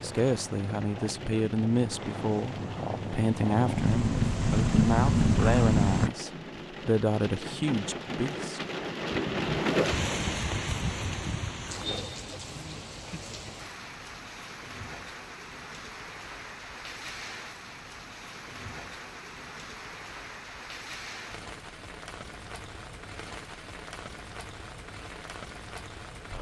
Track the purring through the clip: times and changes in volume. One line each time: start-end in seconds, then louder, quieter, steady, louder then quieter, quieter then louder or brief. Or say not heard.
0.0-6.1 louder.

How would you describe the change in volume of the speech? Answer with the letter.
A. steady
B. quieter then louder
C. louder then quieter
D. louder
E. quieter
A.